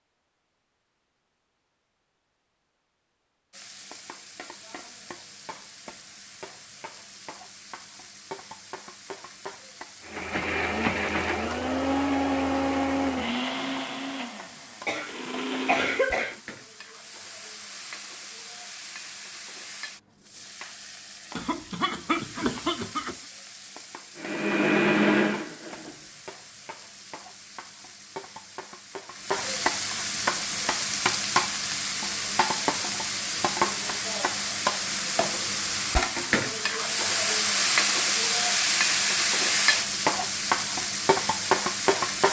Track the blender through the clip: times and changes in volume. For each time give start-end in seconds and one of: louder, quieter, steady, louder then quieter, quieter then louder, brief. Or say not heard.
10.0-16.1 quieter
24.1-25.9 brief.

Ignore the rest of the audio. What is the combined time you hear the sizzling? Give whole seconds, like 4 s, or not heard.
39 s.